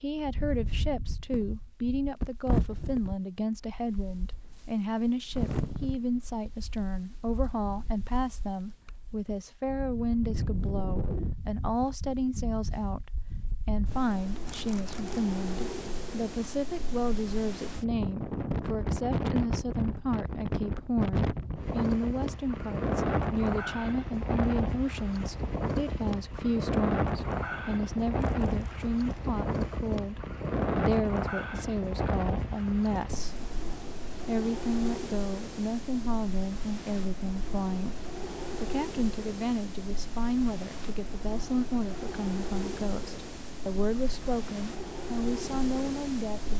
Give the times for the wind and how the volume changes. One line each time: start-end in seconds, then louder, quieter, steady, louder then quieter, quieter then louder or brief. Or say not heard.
0.0-46.5 louder then quieter.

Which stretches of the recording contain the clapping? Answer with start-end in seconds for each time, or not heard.
not heard.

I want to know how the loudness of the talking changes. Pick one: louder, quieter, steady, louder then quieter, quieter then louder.
steady.